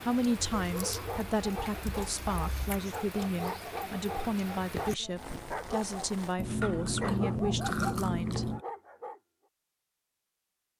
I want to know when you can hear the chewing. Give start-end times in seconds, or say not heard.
0.3-2.8, 6.3-8.6.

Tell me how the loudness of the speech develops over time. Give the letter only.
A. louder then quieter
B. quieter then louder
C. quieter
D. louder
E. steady
E.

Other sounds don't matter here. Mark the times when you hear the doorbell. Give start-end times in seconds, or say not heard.
not heard.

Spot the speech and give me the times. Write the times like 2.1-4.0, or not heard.
0.0-8.5.